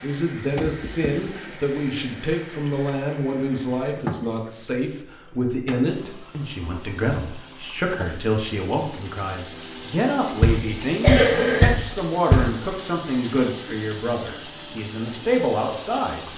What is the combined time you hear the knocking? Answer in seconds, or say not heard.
3 s.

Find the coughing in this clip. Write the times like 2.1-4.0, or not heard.
11.0-11.7.